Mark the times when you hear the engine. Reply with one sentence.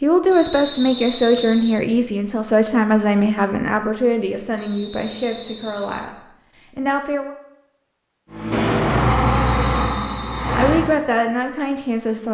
You can hear the engine from 8.3 to 11.0 s.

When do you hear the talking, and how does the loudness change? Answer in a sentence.
The talking can be heard from 0.0 to 7.3 s, getting quieter; and briefly from 10.6 to 12.2 s.